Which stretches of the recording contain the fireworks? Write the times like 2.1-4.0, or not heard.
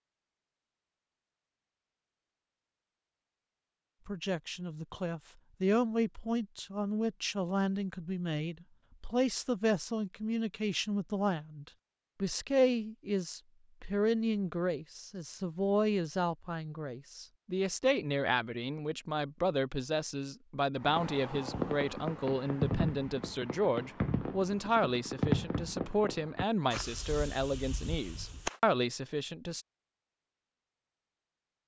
20.8-28.6.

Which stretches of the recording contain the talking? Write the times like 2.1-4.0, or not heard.
4.0-29.6.